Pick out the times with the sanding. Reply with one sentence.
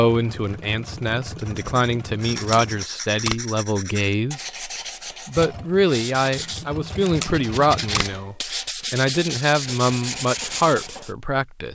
The sanding can be heard from 1.4 to 11.1 s.